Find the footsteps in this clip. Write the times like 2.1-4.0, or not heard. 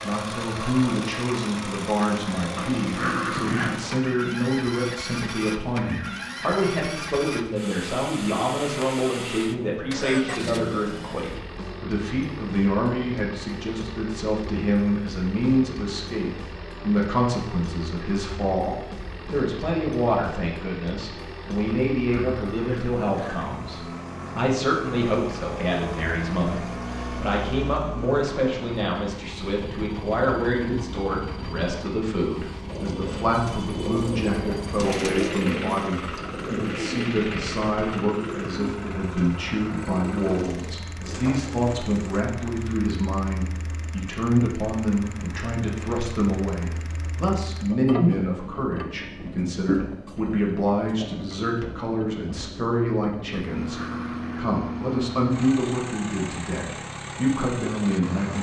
not heard.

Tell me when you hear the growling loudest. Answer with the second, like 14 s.
3 s.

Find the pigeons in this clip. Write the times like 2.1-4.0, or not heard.
32.6-42.2.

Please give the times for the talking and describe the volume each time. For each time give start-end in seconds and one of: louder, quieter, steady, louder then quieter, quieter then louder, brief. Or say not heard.
0.0-58.3 steady.